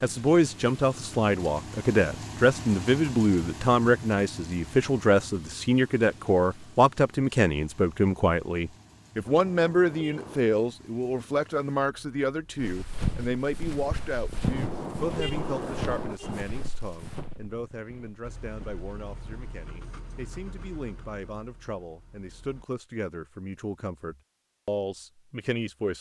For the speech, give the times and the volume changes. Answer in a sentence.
The speech can be heard from 0.0 to 25.9 s, getting quieter.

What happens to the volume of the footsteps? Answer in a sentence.
The loudness of the footsteps goes down.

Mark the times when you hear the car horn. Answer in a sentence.
The car horn can be heard from 9.2 to 10.4 s and from 14.4 to 16.4 s.